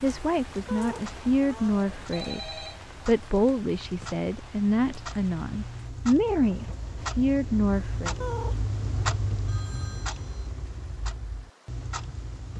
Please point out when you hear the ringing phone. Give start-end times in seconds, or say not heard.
2.1-2.9, 9.4-10.4.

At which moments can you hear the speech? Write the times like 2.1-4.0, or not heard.
0.0-8.2.